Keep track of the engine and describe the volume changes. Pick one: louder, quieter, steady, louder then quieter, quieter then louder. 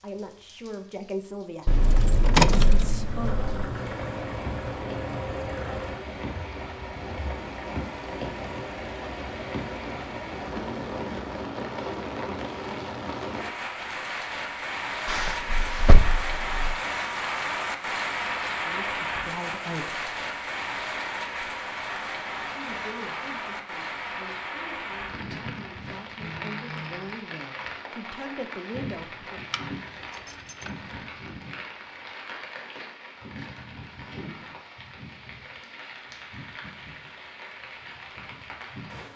quieter.